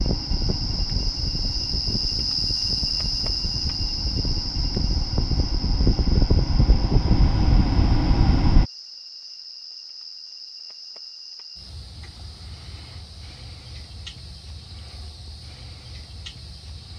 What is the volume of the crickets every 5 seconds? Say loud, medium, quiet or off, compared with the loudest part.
loud, medium, quiet, quiet.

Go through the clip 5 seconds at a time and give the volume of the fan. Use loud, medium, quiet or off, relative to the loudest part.
medium, loud, off, off.